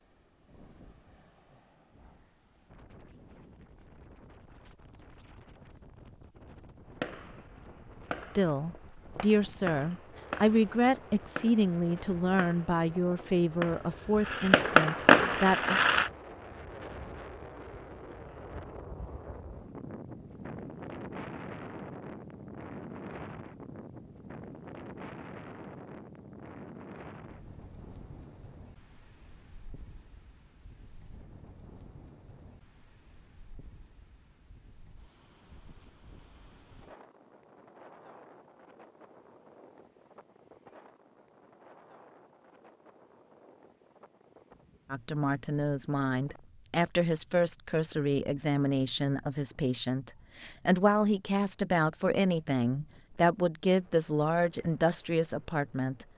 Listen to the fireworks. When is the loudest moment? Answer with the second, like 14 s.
15 s.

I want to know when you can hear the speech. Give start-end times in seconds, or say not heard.
8.3-15.8, 44.9-56.0.